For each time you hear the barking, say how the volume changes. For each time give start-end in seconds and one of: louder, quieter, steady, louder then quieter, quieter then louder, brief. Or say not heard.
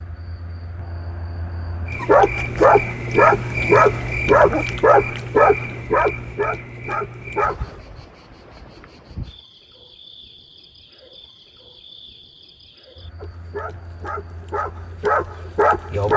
2.0-7.8 quieter
13.2-16.1 brief.